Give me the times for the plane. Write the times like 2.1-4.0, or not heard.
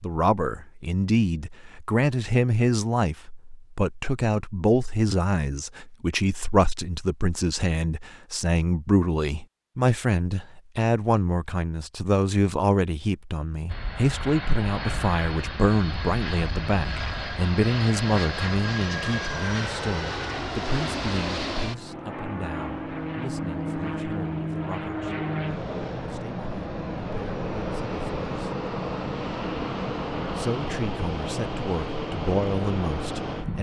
13.7-33.5.